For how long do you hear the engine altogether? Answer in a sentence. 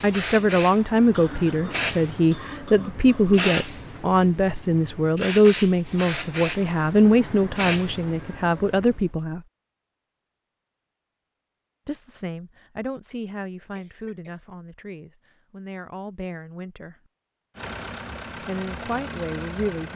You can hear the engine for 2 seconds altogether.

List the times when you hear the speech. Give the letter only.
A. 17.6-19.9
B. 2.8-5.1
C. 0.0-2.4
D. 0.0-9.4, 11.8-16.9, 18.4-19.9
D.